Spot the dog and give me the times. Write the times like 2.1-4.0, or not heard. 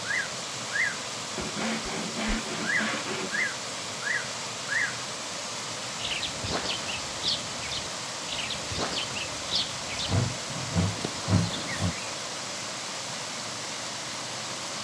not heard.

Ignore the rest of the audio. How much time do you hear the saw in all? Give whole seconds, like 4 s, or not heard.
4 s.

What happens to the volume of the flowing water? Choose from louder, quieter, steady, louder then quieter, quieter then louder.
steady.